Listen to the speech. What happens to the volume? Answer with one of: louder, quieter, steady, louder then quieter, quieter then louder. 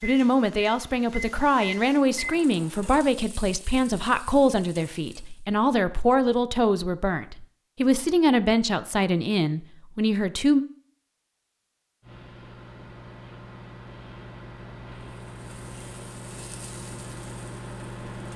steady.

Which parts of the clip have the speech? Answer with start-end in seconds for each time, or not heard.
0.0-10.7.